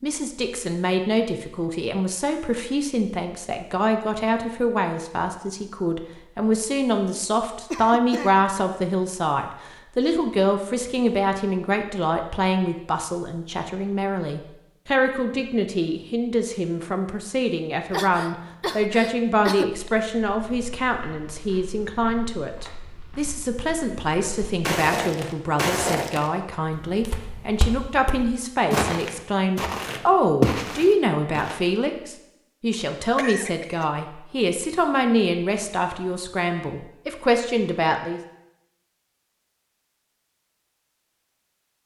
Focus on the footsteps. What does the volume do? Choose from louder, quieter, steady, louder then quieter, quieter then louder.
louder.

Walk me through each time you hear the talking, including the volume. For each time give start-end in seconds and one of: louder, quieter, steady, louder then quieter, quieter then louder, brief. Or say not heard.
0.0-38.2 steady.